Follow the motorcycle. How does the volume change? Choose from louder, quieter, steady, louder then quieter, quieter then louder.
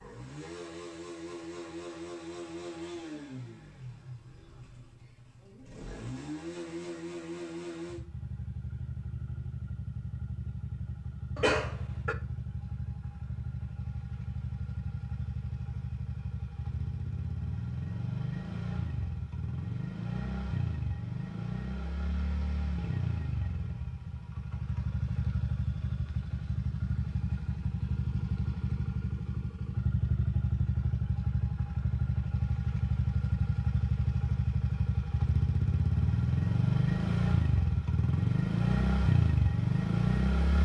louder.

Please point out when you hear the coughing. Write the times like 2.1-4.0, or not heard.
11.3-12.2.